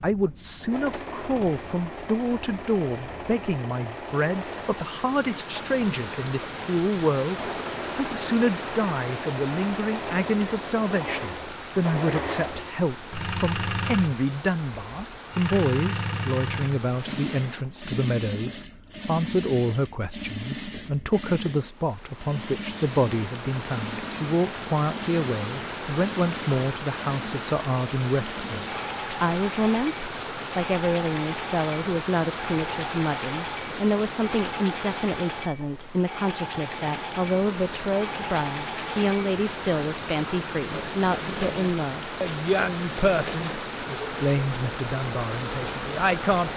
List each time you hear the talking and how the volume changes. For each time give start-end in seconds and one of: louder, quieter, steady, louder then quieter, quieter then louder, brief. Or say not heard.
0.0-46.5 steady.